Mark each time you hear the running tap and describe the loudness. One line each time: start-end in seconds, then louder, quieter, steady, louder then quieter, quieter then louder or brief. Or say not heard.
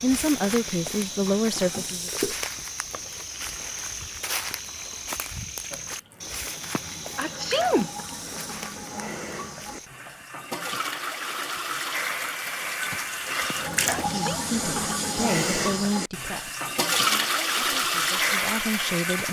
0.0-19.2 louder.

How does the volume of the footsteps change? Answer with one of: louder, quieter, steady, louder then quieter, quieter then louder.
quieter.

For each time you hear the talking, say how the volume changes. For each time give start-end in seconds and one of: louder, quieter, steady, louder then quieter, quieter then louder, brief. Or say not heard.
0.0-2.1 brief
14.1-19.2 quieter then louder.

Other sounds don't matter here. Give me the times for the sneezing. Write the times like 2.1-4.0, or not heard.
1.6-2.4, 6.8-7.9, 13.5-14.4.